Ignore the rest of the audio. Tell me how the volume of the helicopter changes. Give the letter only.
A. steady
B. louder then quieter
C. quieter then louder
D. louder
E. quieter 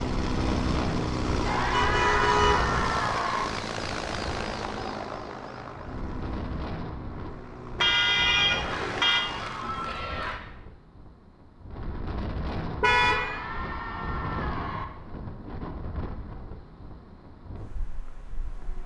E.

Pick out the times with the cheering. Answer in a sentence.
You can hear the cheering from 1.4 to 3.5 s, from 8.4 to 10.4 s and from 12.8 to 14.8 s.